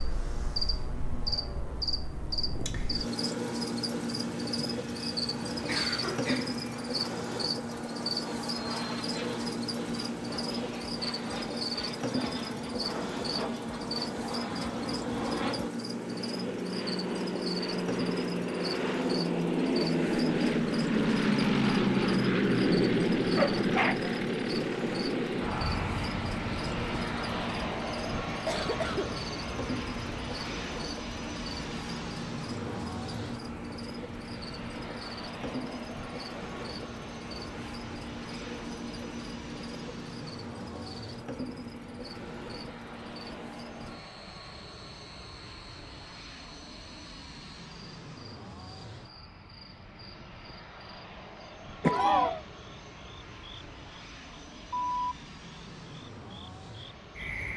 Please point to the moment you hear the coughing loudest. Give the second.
52 s.